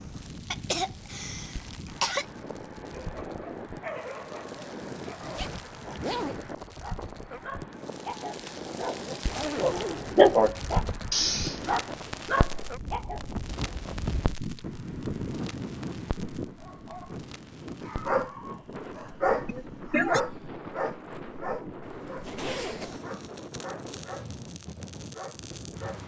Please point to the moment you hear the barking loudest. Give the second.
10 s.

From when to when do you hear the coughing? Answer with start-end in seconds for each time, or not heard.
0.5-2.2, 11.1-11.8, 19.4-20.2.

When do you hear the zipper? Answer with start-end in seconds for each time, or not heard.
5.2-6.5, 9.2-10.2, 21.8-23.0.